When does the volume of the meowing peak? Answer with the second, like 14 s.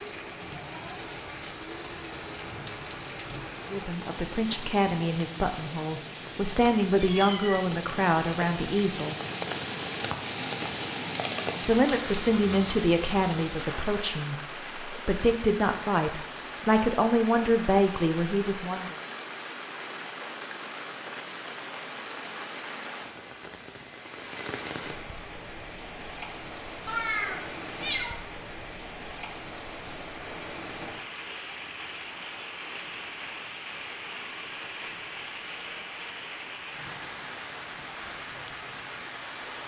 27 s.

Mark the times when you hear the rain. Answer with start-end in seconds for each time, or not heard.
0.0-39.6.